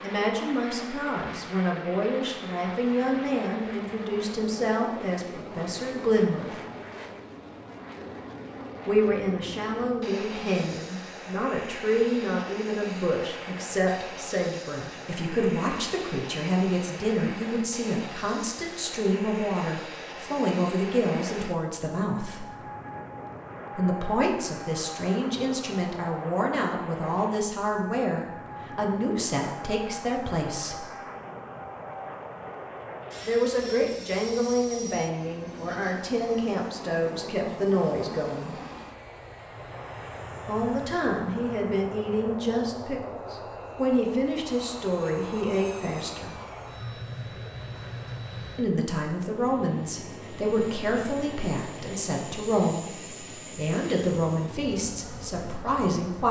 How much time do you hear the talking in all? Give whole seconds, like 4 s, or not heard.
46 s.